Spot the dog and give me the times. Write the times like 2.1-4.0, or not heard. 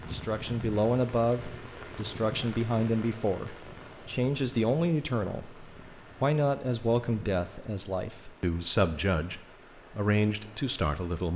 not heard.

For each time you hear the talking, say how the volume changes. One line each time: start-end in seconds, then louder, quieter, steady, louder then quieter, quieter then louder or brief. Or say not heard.
0.1-11.3 steady.